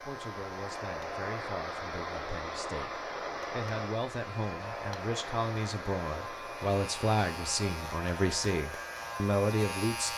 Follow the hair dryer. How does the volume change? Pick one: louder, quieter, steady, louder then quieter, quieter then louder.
quieter.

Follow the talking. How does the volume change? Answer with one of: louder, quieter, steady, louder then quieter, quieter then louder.
louder.